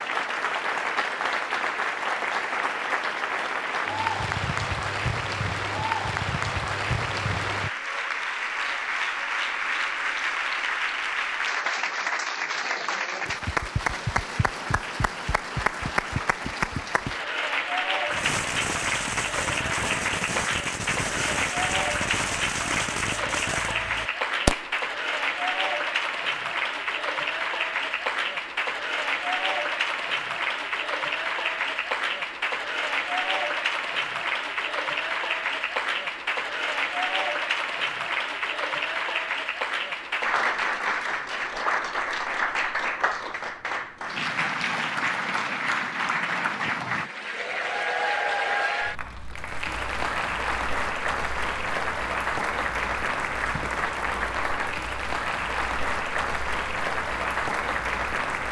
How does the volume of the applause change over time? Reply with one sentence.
The volume of the applause stays about the same.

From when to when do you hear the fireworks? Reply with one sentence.
You can hear the fireworks from 18.1 to 24.8 s.